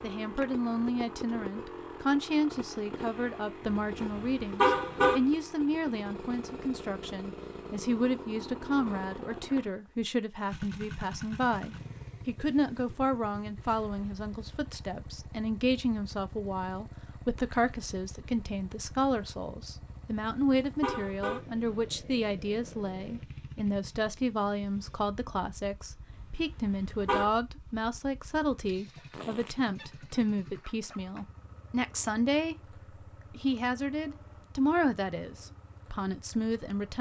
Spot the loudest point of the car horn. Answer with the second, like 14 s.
5 s.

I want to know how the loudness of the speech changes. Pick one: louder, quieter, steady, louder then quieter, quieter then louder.
steady.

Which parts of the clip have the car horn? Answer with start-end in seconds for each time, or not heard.
3.6-5.2, 19.9-21.4, 26.1-27.3.